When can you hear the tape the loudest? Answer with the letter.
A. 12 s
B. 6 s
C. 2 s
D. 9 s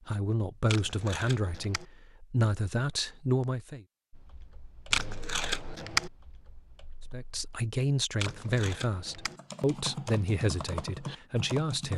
B.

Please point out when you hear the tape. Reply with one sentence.
The tape can be heard from 0.7 to 1.9 s, from 4.9 to 6.1 s and from 8.2 to 9.3 s.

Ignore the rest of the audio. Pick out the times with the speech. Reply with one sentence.
The speech can be heard from 0.1 to 3.9 s and from 7.1 to 11.9 s.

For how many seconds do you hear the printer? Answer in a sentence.
You can't hear the printer here.